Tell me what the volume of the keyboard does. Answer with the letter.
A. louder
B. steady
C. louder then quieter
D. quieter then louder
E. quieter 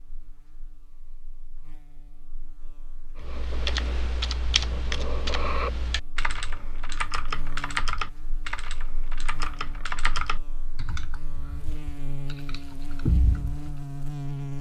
B.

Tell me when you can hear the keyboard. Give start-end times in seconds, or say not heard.
3.2-13.7.